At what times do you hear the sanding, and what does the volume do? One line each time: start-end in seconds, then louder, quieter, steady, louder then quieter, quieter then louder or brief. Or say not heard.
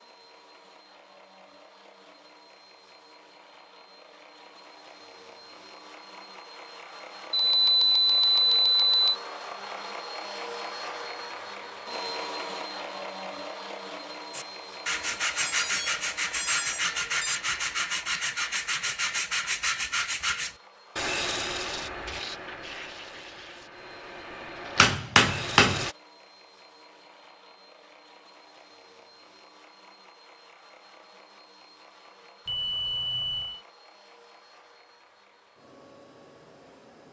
14.3-25.9 quieter.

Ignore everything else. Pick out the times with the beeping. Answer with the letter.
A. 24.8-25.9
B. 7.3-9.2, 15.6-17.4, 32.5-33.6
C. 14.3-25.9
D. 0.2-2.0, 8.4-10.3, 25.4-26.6
B.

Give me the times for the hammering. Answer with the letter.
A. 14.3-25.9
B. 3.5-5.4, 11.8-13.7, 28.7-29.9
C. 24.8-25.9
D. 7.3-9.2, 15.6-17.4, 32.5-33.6
C.